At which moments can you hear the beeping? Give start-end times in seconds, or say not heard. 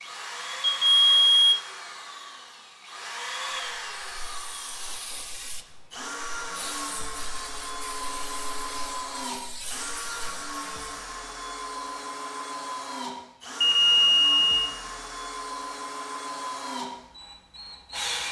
0.6-1.6, 13.6-14.7.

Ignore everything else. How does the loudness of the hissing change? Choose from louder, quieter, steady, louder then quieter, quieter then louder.
steady.